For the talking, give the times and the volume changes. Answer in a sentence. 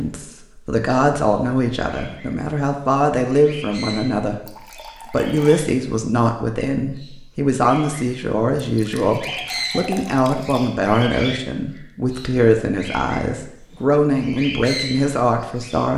You can hear the talking from 0.0 to 15.9 s, at a steady volume.